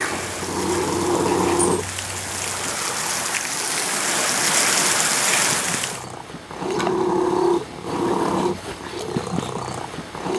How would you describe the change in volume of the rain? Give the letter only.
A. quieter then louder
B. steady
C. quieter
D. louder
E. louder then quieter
D.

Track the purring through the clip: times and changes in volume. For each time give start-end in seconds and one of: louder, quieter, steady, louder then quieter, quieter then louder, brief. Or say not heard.
0.0-10.3 quieter then louder.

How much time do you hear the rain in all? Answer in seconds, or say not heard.
6 s.